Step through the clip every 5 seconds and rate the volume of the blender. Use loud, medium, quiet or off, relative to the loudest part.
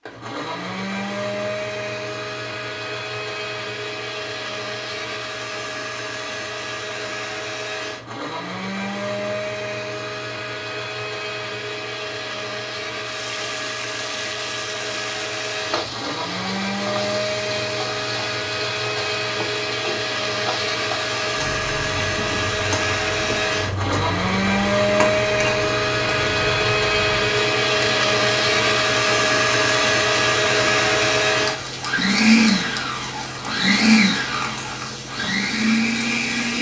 medium, medium, medium, medium, loud, loud, loud, loud.